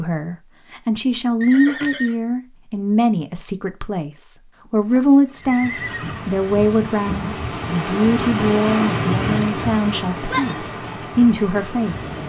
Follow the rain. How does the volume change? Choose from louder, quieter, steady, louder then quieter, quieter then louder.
louder then quieter.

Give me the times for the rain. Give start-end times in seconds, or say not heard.
5.3-12.2.